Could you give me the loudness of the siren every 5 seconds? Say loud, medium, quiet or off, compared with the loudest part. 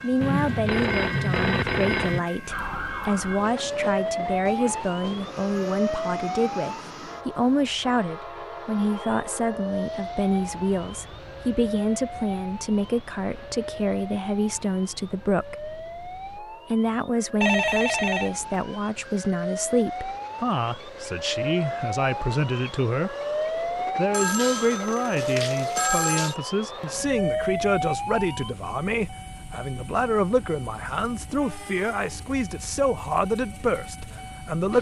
loud, loud, medium, medium, loud, loud, off.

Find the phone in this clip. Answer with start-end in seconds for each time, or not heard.
0.2-2.2, 17.4-18.4, 24.1-26.4.